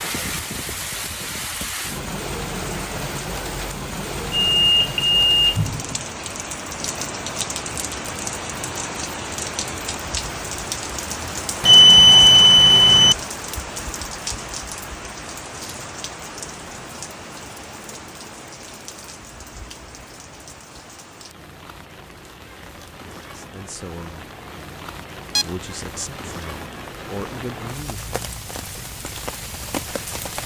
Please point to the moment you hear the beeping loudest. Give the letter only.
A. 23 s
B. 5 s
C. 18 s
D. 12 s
D.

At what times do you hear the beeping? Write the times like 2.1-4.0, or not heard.
4.5-5.6, 11.6-13.2.